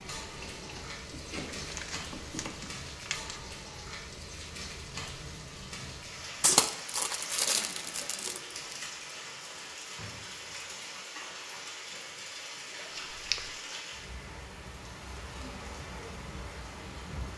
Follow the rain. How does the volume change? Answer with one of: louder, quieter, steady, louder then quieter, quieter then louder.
steady.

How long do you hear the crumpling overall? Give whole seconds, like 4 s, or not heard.
5 s.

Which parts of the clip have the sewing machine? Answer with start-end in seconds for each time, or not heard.
0.2-2.8.